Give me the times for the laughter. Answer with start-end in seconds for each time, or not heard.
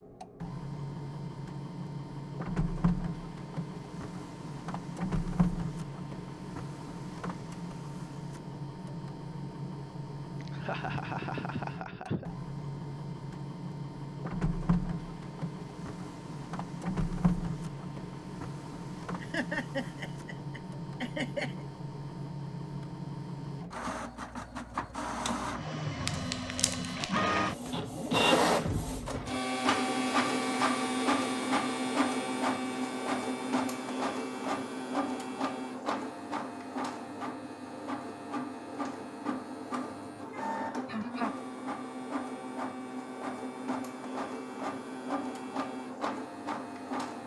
10.4-12.3, 19.2-21.6, 40.1-41.4.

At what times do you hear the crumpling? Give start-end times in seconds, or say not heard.
26.1-27.1.